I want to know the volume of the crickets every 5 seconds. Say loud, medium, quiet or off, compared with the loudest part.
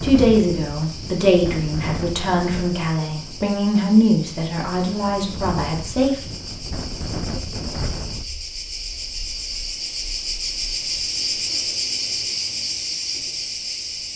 quiet, medium, loud.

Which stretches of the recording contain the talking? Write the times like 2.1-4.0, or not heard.
0.0-6.2.